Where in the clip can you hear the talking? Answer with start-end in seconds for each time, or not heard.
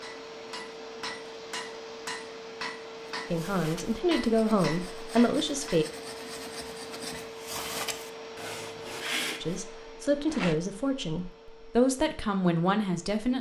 3.3-5.8, 9.4-13.3.